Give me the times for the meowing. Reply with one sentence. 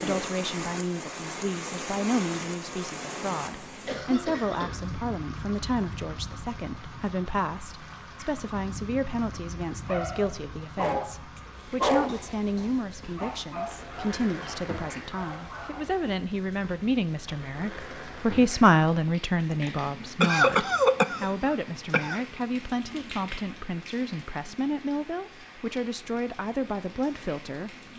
You can't hear the meowing here.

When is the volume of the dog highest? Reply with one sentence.
The loudest moment of the dog is at 12 seconds.